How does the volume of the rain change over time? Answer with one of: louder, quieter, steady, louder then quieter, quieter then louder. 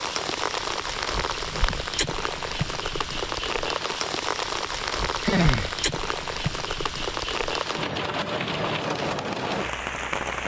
steady.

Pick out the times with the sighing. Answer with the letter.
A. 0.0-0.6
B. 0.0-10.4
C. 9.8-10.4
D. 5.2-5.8
D.